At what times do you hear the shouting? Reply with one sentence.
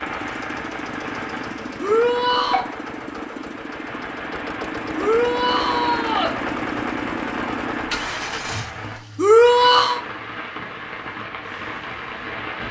You can hear the shouting from 1.8 to 2.6 s, from 5.0 to 6.3 s and from 9.2 to 10.0 s.